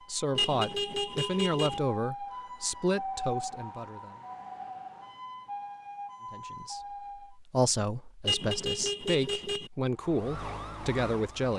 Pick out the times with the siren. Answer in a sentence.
The siren can be heard from 0.0 to 7.4 s and from 9.8 to 11.5 s.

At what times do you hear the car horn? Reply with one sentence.
The car horn can be heard from 0.3 to 1.8 s and from 8.2 to 9.7 s.